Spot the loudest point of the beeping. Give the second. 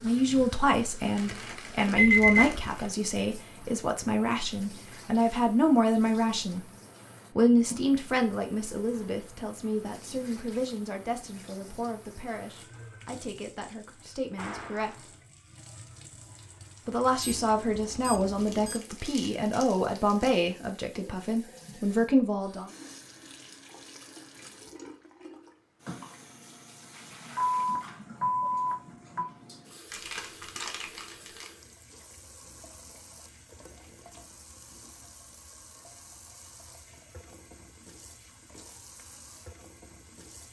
2 s.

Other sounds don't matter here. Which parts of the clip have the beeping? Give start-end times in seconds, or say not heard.
1.9-2.5, 17.2-18.8, 27.4-29.2.